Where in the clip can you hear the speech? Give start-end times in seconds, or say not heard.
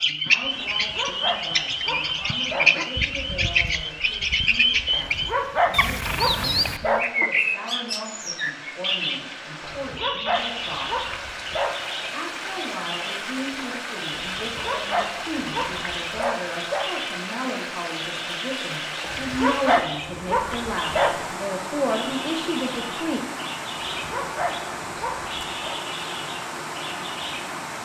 0.0-10.9, 12.1-23.2.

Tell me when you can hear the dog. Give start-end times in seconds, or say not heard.
0.6-2.9, 4.9-7.1, 9.6-11.9, 14.2-16.9, 19.0-21.4, 23.9-25.8.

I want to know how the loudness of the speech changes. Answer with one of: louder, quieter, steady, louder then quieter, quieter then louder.
louder.